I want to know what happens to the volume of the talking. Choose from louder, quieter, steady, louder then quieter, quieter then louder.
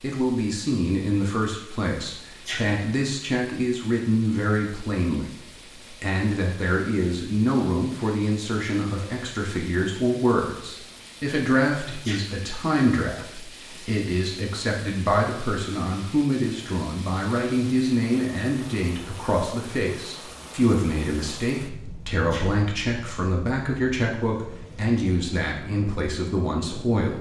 steady.